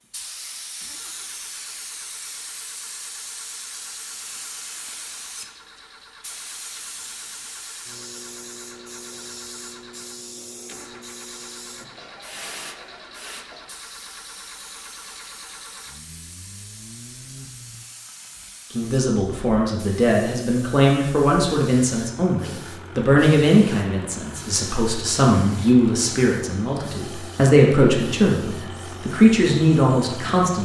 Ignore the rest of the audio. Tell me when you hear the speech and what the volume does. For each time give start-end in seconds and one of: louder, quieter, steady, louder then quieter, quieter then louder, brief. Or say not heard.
18.7-30.6 steady.